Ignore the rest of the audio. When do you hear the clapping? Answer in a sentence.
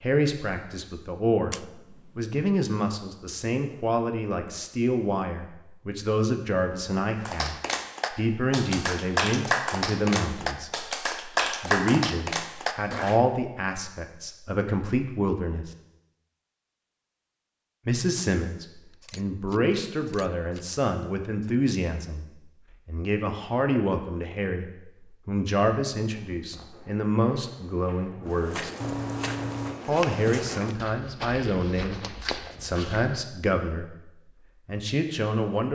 You can hear the clapping from 7.2 to 13.2 s.